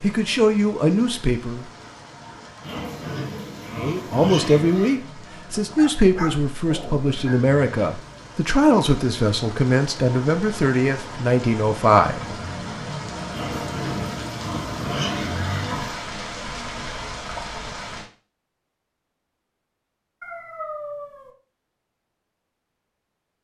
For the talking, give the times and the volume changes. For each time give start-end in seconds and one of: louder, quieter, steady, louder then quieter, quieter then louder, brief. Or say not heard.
0.0-1.6 brief
3.7-12.2 steady.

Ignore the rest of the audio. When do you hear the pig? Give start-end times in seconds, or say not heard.
2.6-5.0, 13.3-16.1.